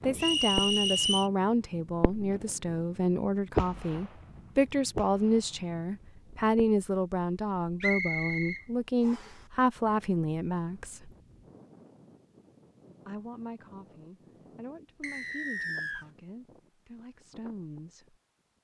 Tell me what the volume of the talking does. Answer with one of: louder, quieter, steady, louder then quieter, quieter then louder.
quieter.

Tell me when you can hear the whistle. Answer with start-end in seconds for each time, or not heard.
0.1-1.3, 7.8-9.3, 15.0-16.1.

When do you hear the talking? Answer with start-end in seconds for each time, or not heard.
0.0-11.1, 13.1-18.1.